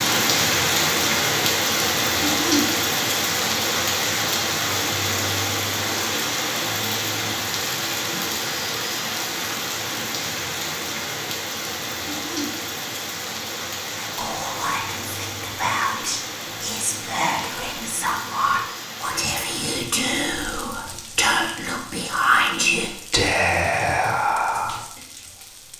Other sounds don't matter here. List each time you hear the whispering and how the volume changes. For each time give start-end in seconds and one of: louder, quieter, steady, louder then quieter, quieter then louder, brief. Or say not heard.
14.0-25.0 louder.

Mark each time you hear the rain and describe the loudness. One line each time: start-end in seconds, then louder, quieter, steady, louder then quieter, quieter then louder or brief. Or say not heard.
0.0-25.7 quieter.